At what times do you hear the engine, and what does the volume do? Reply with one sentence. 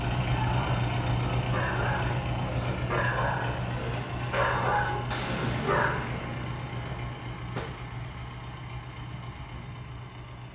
You can hear the engine from 0.0 to 10.5 s, getting quieter.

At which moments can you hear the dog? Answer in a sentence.
You can hear the dog from 0.3 to 6.0 s.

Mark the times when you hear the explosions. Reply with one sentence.
You can hear the explosions from 5.1 to 7.7 s.